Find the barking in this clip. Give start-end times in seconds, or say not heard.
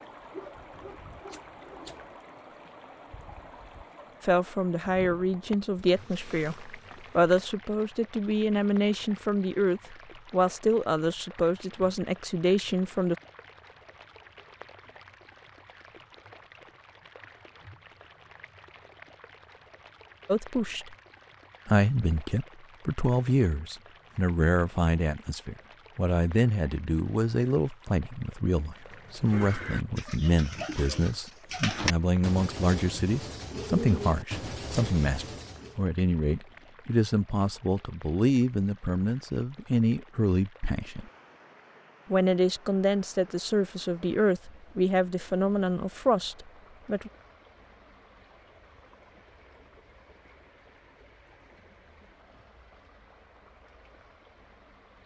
0.3-2.0.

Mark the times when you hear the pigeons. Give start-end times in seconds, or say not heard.
28.9-35.9.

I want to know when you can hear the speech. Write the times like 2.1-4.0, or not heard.
4.2-13.2, 20.2-20.9, 21.6-41.0, 42.1-47.1.